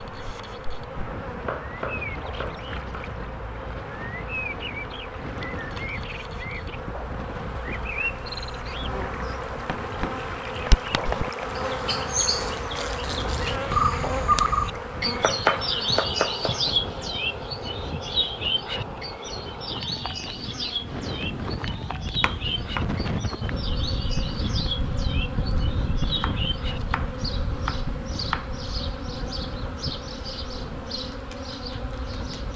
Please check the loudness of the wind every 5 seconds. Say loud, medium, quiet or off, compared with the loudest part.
medium, medium, medium, medium, loud, loud, medium.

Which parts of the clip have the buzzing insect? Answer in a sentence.
You can hear the buzzing insect from 0.0 to 32.5 s.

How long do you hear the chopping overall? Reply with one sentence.
You can hear the chopping for 8 seconds altogether.